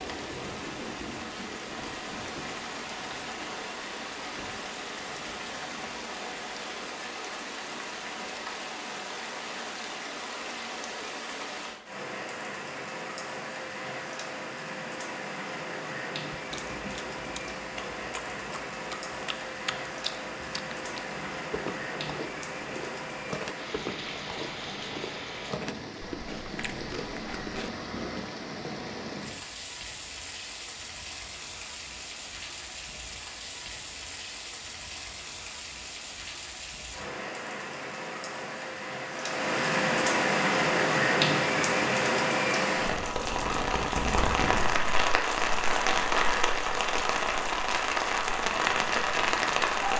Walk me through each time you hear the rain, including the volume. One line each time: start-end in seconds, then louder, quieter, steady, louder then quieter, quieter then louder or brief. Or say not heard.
0.0-49.9 louder.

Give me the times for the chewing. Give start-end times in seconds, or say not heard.
16.3-27.7.